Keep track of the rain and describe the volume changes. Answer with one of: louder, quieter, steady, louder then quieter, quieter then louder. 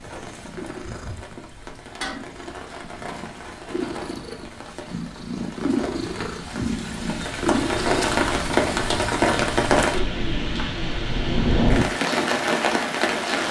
louder.